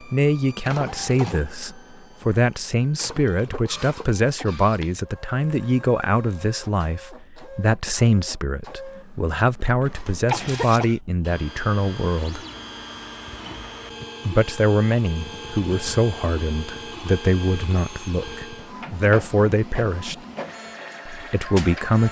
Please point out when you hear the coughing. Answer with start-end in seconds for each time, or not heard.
10.3-11.0.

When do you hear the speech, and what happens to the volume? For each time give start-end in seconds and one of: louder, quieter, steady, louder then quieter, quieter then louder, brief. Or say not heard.
0.1-12.4 steady
14.2-20.1 quieter then louder
21.1-22.0 brief.